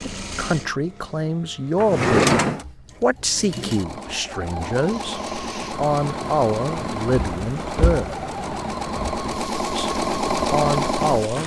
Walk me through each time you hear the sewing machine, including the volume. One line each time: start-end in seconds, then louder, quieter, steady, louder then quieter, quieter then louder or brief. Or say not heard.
0.0-11.4 louder.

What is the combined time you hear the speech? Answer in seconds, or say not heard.
8 s.